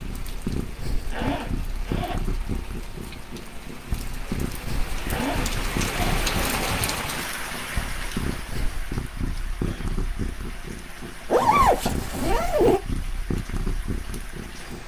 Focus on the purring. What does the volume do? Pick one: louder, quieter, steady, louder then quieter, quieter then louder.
steady.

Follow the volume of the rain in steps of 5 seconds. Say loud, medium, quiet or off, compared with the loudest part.
medium, loud, quiet.